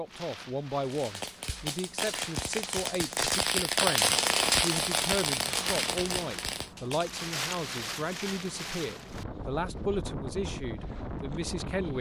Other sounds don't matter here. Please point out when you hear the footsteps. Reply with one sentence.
The footsteps can't be heard in this clip.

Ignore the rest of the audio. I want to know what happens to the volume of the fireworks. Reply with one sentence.
The loudness of the fireworks goes up, then down.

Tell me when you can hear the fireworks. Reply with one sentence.
You can hear the fireworks from 0.8 to 7.3 s.